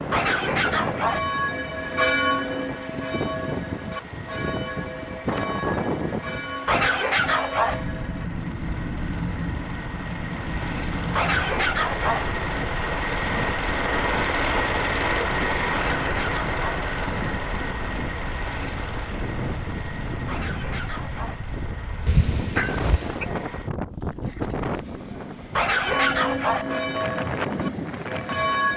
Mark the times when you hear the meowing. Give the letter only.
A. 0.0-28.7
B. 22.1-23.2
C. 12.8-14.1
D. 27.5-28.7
B.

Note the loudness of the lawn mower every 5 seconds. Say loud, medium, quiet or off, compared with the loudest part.
quiet, quiet, loud, loud, quiet, quiet.